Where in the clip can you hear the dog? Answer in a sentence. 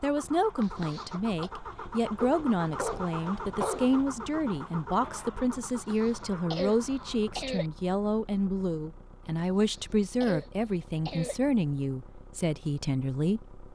The dog can be heard from 2.2 to 4.0 s.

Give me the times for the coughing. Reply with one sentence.
You can hear the coughing from 0.6 to 1.5 s, from 5.8 to 7.7 s and from 9.6 to 11.4 s.